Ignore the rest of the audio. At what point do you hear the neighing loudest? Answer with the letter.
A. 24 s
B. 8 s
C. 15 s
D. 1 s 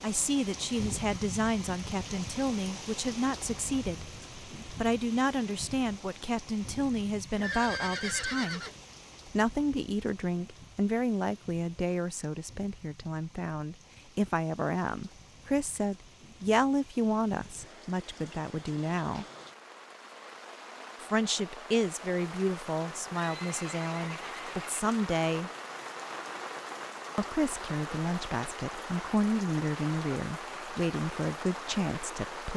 B.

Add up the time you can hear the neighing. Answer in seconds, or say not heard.
3 s.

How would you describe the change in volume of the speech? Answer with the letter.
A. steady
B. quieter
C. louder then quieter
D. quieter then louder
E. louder
A.